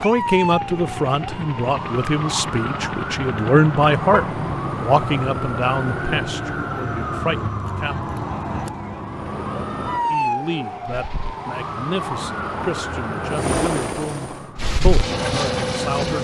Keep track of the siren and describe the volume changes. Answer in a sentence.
The volume of the siren stays about the same.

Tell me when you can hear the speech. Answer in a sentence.
You can hear the speech from 0.0 to 8.2 s and from 10.1 to 16.1 s.